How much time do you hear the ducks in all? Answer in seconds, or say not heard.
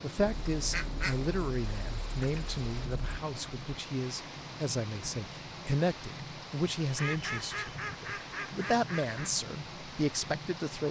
5 s.